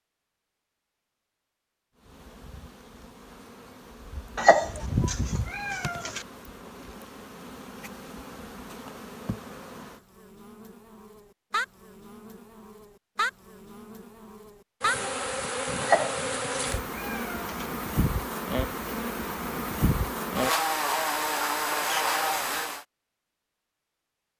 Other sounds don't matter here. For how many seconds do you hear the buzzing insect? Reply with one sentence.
You can hear the buzzing insect for 21 seconds altogether.